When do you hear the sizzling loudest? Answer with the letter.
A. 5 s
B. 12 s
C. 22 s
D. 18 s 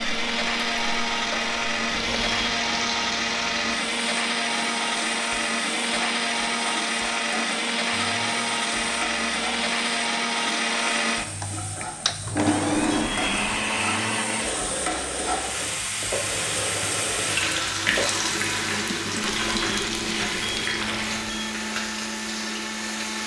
D.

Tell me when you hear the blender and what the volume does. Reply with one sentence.
The blender can be heard from 0.0 to 23.2 s, getting quieter.